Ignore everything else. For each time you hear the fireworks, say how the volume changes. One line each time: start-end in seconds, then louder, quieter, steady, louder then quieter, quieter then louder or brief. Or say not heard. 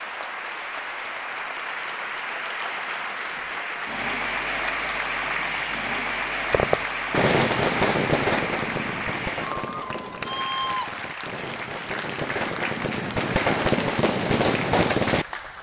6.5-15.2 quieter then louder.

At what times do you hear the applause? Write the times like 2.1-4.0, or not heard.
0.0-15.5.